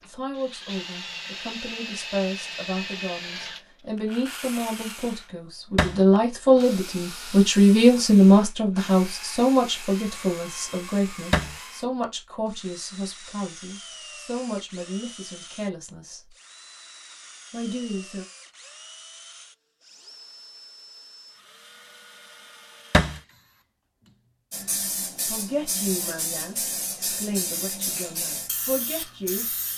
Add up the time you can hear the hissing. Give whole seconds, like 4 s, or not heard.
5 s.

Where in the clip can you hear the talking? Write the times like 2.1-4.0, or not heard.
0.1-16.3, 17.5-18.2, 25.2-29.4.